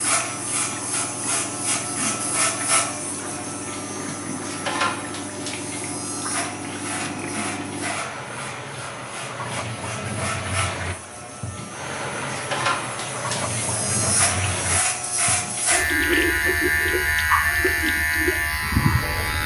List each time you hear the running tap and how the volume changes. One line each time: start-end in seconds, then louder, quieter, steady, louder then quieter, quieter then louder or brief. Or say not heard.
0.0-19.4 louder.